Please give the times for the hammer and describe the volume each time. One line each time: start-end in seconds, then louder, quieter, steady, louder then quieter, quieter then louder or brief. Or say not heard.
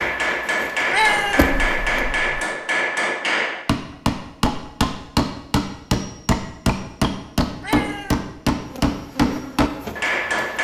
0.0-10.5 steady.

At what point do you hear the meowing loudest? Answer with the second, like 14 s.
1 s.